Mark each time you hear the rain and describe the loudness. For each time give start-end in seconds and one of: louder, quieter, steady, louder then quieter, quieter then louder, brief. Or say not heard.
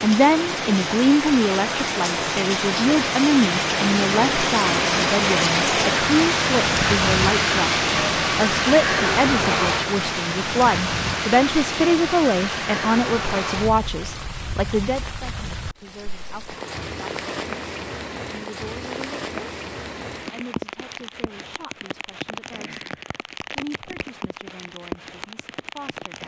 0.0-26.2 quieter.